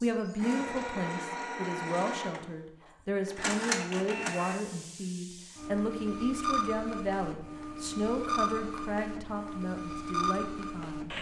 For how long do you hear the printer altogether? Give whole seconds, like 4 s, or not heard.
11 s.